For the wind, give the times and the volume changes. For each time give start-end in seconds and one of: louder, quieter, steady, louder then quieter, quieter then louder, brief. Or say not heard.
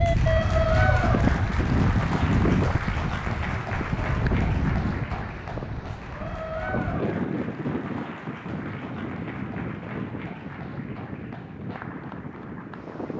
0.0-13.1 quieter.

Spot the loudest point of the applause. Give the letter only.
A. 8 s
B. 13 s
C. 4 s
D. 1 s
D.